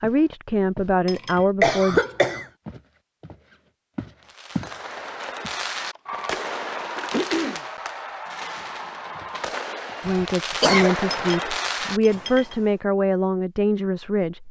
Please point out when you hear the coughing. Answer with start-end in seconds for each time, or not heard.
1.6-2.5, 6.0-7.7, 10.1-10.9.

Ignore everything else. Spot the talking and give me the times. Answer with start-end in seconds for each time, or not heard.
0.0-2.0, 10.1-14.4.